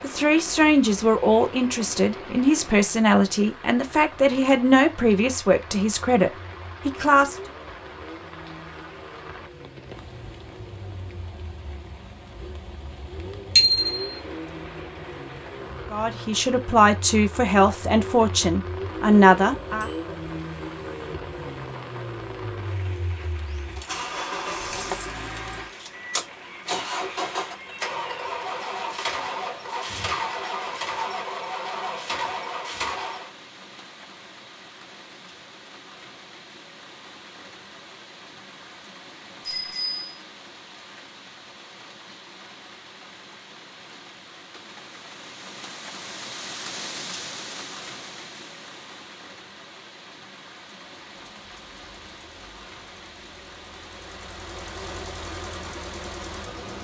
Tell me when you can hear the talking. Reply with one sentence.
The talking can be heard from 0.0 to 7.3 s and from 15.9 to 19.9 s.